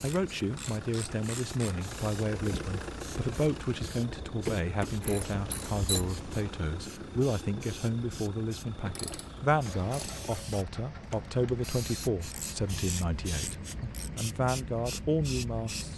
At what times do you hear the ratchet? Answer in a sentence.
The ratchet can be heard from 0.0 to 1.9 s, from 4.5 to 6.1 s, from 8.8 to 10.3 s and from 12.2 to 14.1 s.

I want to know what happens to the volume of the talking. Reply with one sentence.
The volume of the talking stays about the same.